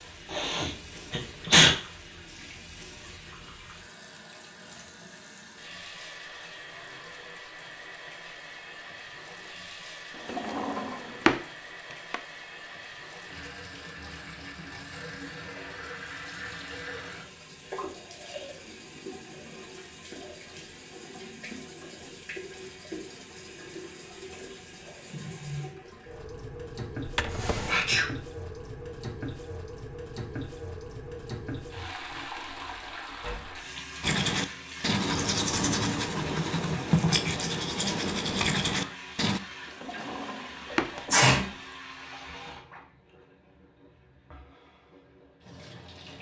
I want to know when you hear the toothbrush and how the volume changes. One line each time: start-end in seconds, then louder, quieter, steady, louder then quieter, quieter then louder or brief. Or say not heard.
34.0-39.4 steady.